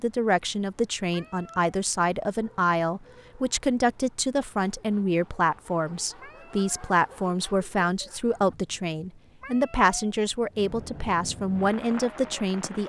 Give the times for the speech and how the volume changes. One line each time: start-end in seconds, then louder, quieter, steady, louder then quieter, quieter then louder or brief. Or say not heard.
0.0-12.8 steady.